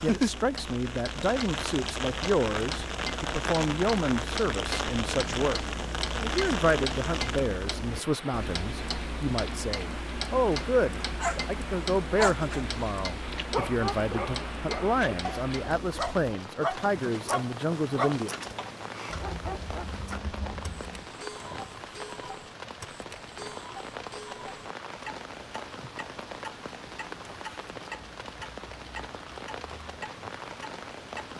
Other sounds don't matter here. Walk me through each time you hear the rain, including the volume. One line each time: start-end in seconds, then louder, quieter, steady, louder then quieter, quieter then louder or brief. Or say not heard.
0.0-31.3 quieter.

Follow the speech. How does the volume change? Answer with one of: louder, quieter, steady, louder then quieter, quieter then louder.
steady.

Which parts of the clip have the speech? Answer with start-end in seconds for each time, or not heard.
0.0-5.6, 6.2-18.3.